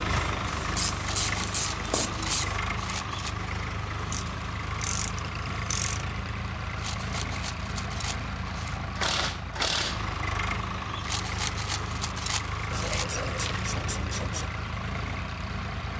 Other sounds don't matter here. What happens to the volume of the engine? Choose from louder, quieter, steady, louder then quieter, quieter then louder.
steady.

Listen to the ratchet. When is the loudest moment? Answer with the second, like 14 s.
10 s.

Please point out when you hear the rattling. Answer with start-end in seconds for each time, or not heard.
1.0-3.4, 6.8-8.8, 11.0-13.1.